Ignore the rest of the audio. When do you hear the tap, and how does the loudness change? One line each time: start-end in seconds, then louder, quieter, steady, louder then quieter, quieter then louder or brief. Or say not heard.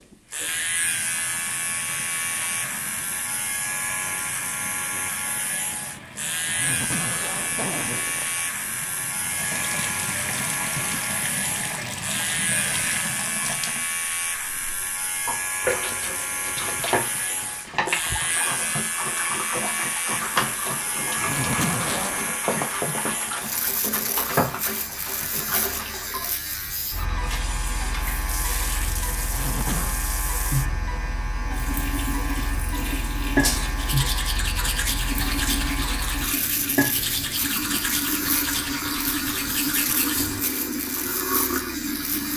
0.0-42.3 louder.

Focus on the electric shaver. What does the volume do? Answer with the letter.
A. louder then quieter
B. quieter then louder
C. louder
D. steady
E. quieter
D.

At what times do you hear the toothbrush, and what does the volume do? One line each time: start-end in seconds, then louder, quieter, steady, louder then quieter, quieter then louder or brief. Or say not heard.
33.4-40.4 steady.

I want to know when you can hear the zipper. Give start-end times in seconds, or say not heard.
6.5-8.4, 21.1-22.4, 29.2-30.0.